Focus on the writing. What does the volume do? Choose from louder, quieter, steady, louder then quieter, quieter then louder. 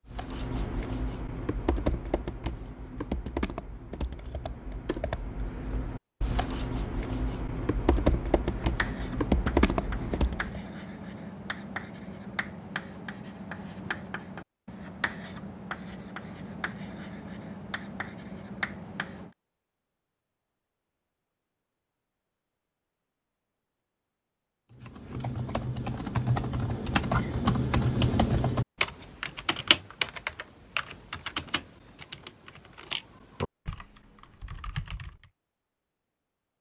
steady.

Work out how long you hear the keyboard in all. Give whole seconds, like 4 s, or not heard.
21 s.